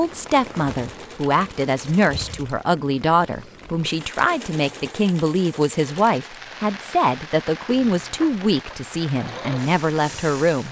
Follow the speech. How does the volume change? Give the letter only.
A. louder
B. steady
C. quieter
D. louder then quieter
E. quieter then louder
B.